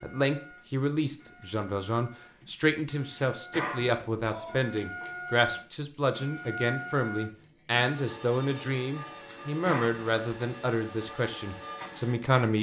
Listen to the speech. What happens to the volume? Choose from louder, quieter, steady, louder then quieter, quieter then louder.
steady.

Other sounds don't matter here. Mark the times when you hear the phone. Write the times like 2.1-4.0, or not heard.
3.5-4.6, 9.7-10.1.